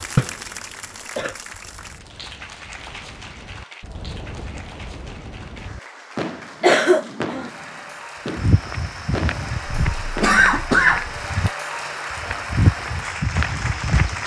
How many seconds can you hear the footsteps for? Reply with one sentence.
You can hear the footsteps for 6 seconds altogether.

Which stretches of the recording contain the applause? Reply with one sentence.
The applause can be heard from 0.0 to 14.2 s.